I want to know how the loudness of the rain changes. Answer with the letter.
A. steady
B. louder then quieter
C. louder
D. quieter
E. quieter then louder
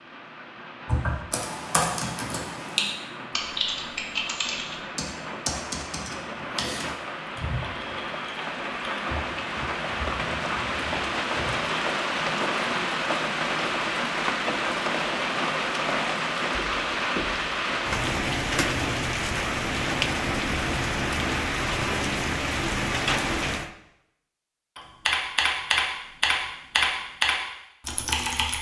C.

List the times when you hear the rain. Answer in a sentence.
The rain can be heard from 0.0 to 23.8 s.